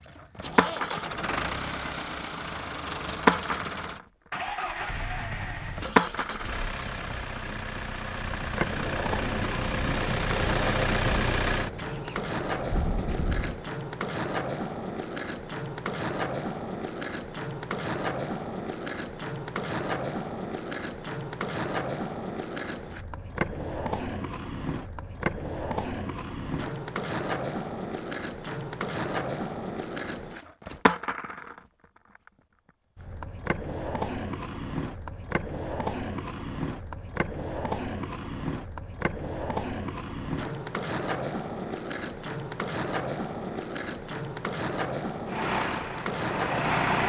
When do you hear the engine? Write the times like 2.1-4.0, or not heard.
0.0-13.7, 45.2-47.0.